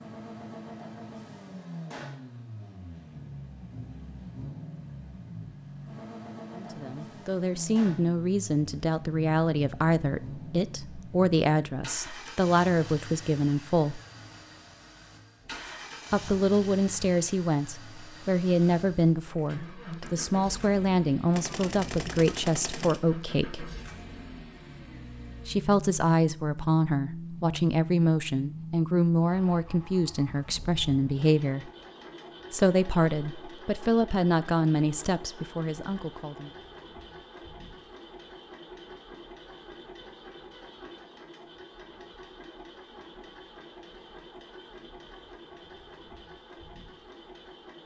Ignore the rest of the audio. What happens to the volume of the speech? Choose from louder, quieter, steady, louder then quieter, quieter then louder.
steady.